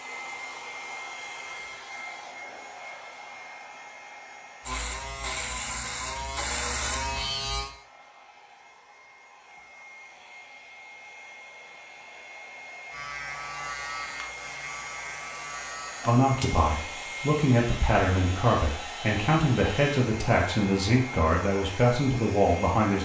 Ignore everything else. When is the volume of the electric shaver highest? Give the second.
7 s.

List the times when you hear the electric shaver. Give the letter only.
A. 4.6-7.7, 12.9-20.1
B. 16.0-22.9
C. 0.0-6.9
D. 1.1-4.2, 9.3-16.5
A.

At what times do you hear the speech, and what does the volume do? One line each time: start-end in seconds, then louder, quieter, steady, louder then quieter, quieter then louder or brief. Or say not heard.
16.0-22.9 steady.